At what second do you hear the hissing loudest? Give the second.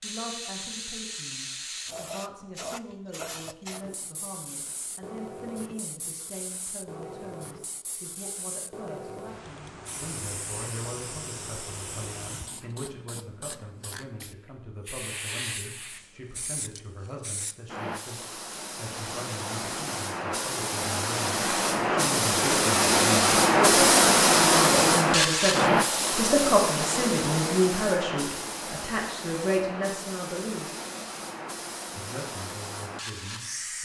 24 s.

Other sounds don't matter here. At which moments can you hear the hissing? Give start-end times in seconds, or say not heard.
0.0-33.8.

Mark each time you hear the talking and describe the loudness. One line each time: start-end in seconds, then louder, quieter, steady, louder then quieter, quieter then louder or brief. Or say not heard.
0.0-30.7 louder
31.9-33.8 brief.